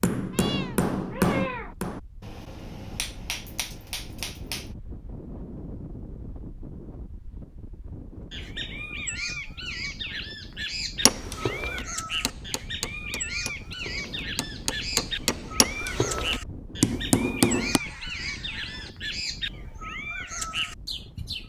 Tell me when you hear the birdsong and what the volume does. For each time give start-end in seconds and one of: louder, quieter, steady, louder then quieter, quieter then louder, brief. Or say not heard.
8.3-21.4 steady.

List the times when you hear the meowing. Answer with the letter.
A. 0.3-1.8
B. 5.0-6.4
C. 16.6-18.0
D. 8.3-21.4
A.